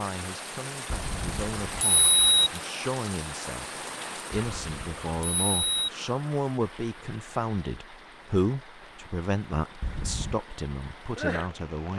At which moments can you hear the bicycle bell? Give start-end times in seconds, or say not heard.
0.9-2.5, 4.3-5.9, 9.8-10.4.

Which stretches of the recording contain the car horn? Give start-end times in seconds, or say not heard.
not heard.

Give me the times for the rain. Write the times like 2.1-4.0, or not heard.
0.0-11.9.